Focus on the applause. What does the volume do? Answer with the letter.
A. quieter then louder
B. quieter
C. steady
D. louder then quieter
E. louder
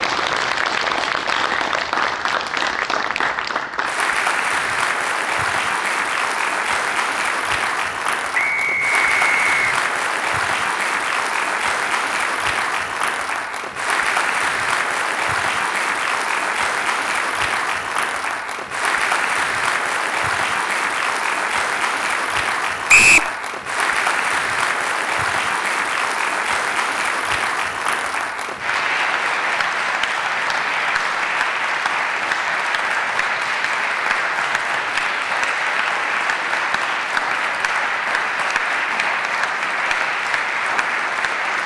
C.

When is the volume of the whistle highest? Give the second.
23 s.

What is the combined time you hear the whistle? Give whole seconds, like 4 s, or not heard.
2 s.